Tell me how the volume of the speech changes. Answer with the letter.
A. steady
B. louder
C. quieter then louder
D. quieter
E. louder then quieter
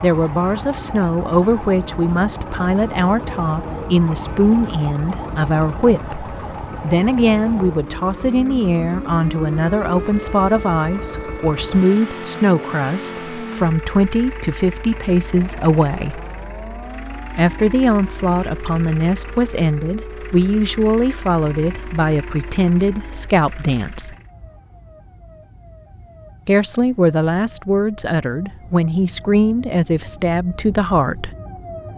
A.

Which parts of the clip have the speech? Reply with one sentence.
The speech can be heard from 0.0 to 16.2 s, from 17.4 to 24.1 s and from 26.4 to 31.3 s.